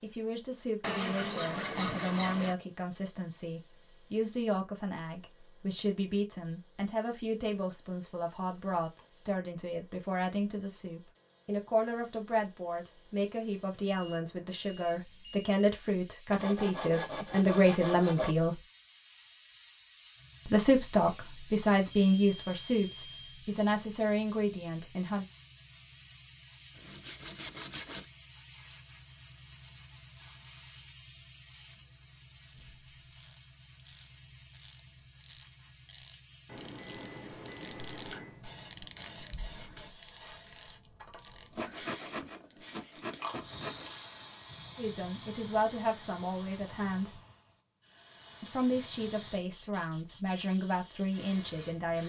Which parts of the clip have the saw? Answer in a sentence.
The saw can be heard from 0.8 to 2.5 s, from 16.3 to 18.4 s, from 26.8 to 28.1 s and from 41.5 to 44.0 s.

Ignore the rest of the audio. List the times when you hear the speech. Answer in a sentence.
You can hear the speech from 0.0 to 18.6 s, from 20.4 to 25.2 s, from 44.8 to 47.2 s and from 48.4 to 52.0 s.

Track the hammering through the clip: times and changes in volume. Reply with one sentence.
The hammering can't be heard in this clip.